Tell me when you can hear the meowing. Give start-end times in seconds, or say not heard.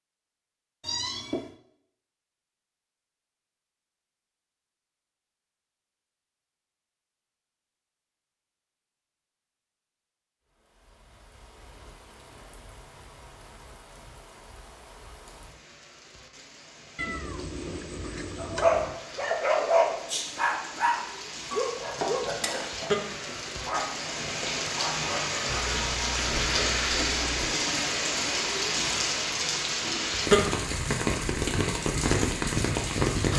0.8-1.6, 16.9-19.0, 25.4-27.5.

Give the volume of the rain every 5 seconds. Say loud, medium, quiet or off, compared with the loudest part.
off, off, quiet, quiet, medium, loud, loud.